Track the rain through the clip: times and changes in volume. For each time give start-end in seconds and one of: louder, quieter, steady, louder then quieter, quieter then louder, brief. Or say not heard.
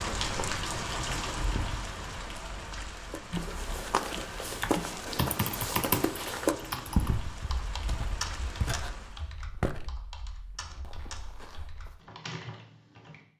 0.0-9.3 quieter.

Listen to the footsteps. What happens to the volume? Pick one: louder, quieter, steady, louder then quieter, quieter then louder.
quieter.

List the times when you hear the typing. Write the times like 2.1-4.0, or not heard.
3.3-13.2.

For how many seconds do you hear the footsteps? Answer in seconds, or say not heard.
9 s.